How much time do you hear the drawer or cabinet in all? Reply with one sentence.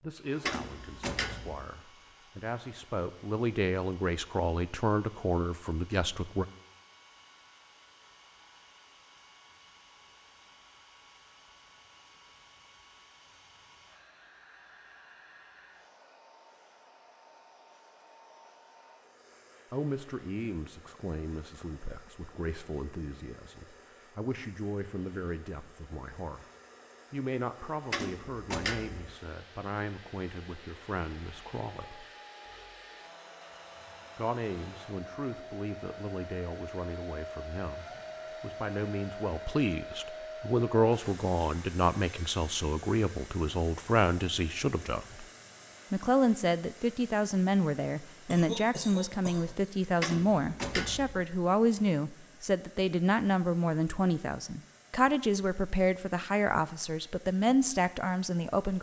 The drawer or cabinet can be heard for 4 seconds in total.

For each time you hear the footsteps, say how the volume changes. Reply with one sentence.
The footsteps can't be heard in this clip.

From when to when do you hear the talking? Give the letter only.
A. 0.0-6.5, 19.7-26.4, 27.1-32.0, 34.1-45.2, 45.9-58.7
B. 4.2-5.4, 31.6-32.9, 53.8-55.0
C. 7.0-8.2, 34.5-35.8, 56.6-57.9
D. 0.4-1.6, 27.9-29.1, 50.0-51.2
A.